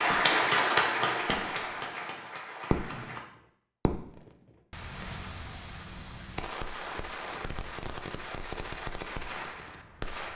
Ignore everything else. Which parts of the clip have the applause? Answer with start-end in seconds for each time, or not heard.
0.0-3.2.